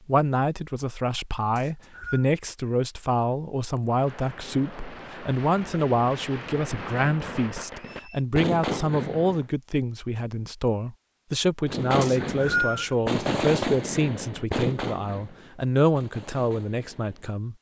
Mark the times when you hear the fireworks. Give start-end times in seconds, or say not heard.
3.9-9.4, 11.7-17.3.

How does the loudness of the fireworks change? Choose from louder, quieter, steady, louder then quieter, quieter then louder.
louder then quieter.